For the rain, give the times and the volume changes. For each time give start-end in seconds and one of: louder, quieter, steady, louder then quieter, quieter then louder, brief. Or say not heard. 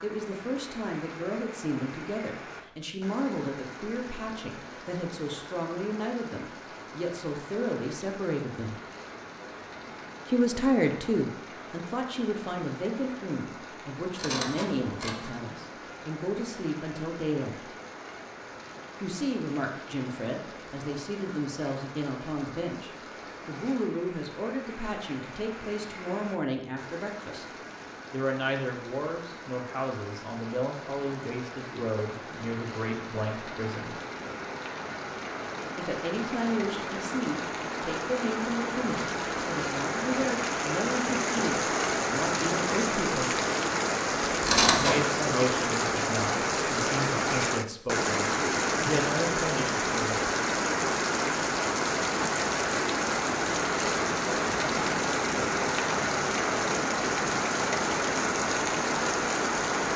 0.0-59.9 louder.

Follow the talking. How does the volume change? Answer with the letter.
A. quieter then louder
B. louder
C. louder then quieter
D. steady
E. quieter
D.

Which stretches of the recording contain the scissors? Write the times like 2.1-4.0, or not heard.
14.2-15.3, 44.5-45.0.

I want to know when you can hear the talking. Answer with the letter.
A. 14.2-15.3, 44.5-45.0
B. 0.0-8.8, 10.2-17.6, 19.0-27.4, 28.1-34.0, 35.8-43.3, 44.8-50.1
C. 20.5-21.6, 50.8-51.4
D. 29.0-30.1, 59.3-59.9
B.